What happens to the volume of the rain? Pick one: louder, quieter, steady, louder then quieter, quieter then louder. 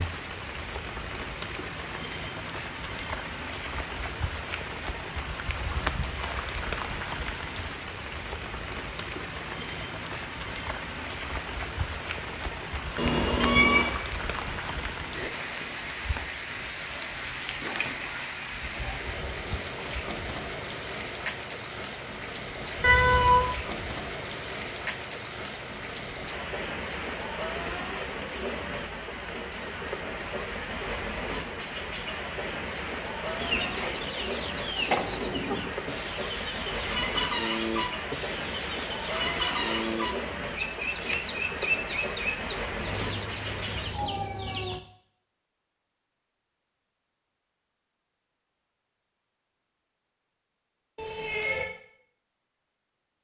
steady.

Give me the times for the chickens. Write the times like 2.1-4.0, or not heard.
33.2-44.8.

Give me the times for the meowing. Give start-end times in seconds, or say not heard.
12.9-13.9, 22.8-23.5, 51.0-51.6.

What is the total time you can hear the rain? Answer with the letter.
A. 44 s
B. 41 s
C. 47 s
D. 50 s
A.